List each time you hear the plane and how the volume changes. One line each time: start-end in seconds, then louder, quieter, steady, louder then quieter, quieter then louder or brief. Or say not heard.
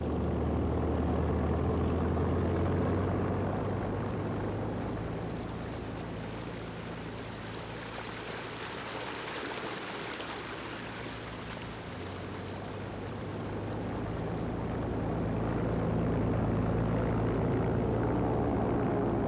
0.0-19.2 quieter then louder.